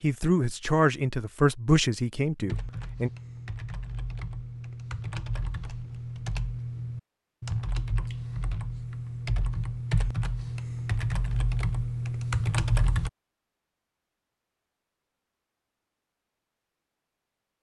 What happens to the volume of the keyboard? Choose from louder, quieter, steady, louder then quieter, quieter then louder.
louder.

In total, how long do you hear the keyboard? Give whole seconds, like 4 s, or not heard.
11 s.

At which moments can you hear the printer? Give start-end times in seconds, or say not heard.
not heard.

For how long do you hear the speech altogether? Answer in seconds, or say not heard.
3 s.